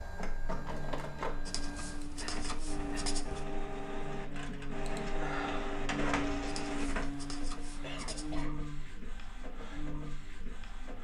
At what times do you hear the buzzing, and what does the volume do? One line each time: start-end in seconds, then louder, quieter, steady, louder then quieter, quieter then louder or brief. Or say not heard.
0.1-11.0 louder then quieter.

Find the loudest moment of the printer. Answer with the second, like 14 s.
6 s.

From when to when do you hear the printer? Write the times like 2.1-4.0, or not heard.
0.0-11.0.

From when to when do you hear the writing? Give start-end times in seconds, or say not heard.
1.4-3.5, 6.7-8.5.